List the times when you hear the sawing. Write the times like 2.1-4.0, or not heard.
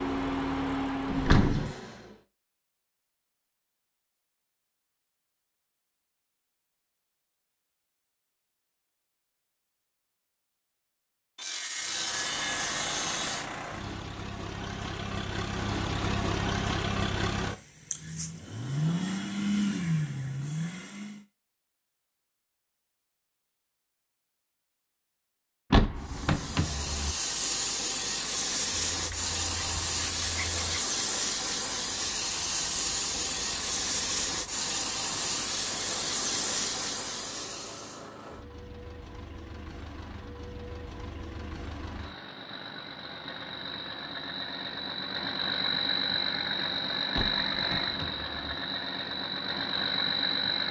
11.3-13.5, 28.9-30.9.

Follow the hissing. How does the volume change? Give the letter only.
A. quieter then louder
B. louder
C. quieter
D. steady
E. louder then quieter
D.